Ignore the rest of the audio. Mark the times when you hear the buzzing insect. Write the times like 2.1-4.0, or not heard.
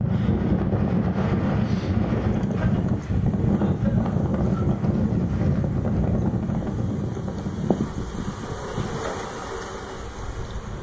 2.2-10.7.